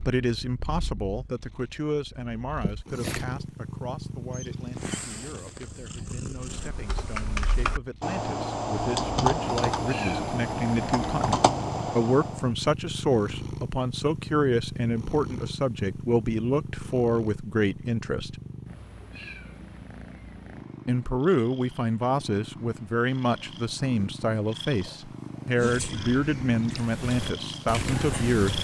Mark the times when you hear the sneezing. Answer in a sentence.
You can hear the sneezing from 2.6 to 3.2 s and from 25.6 to 26.1 s.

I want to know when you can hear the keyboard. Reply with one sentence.
You can hear the keyboard from 6.5 to 12.5 s and from 26.7 to 28.5 s.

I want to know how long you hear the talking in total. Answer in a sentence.
The talking can be heard for 26 seconds in total.